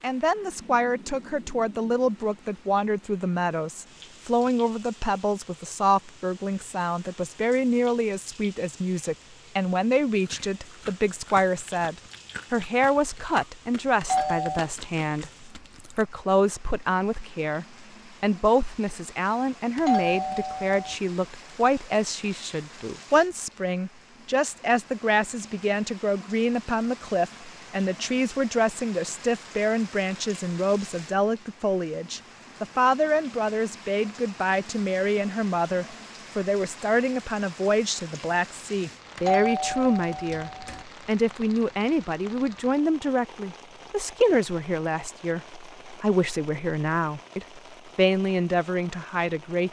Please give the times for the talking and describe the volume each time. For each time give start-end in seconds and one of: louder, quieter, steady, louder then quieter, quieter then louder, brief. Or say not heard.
0.0-49.6 steady.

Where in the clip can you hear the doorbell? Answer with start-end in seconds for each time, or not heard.
14.0-14.6, 19.8-20.9, 39.1-40.9.